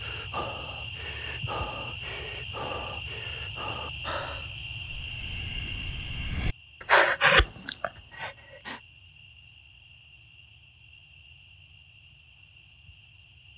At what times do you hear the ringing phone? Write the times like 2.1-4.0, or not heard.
not heard.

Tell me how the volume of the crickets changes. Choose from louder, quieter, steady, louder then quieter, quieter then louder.
quieter.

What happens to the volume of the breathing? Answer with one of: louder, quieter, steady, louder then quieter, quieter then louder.
louder.